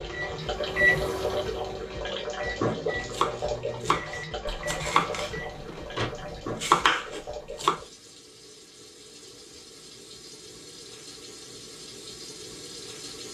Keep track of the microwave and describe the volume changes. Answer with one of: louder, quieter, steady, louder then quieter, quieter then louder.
quieter.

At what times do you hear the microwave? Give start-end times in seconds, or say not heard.
0.0-6.4.